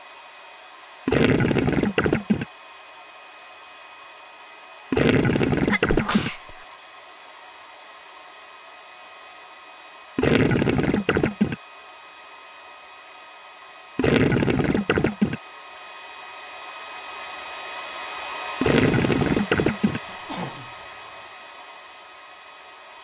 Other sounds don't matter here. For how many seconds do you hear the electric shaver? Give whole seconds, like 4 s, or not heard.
not heard.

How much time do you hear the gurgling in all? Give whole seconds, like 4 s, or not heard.
7 s.